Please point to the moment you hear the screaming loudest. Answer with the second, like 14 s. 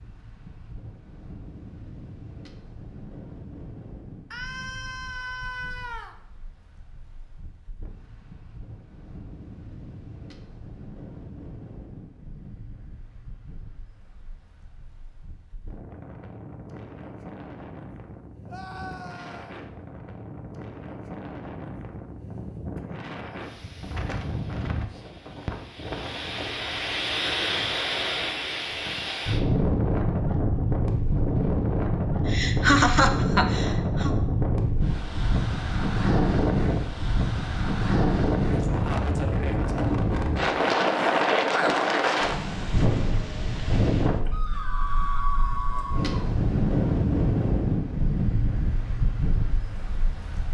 45 s.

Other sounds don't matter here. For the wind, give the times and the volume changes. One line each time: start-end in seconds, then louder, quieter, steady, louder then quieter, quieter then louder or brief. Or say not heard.
0.0-50.4 louder.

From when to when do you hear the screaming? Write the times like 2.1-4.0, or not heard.
4.3-6.2, 18.4-19.6, 44.3-46.2.